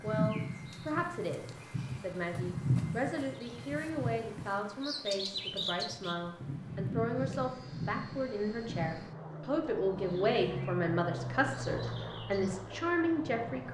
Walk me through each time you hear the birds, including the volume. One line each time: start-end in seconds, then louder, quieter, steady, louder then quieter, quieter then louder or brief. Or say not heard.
0.0-13.6 quieter.